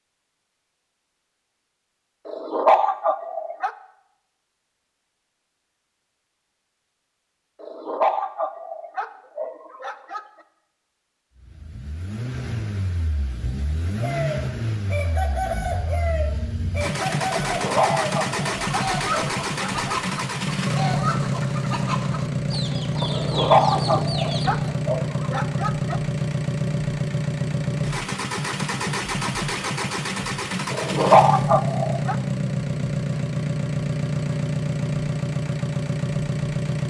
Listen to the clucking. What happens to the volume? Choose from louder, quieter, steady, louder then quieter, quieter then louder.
steady.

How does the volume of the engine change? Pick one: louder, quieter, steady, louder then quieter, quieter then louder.
louder.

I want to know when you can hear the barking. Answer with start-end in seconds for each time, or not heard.
2.2-3.7, 7.6-10.2, 17.4-19.9, 23.1-26.0, 30.7-32.1.